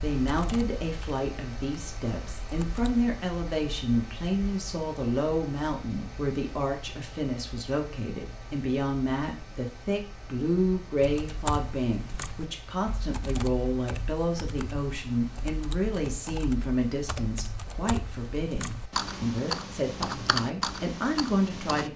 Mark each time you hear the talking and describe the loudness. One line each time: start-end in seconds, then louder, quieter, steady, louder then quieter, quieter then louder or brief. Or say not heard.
0.0-21.9 steady.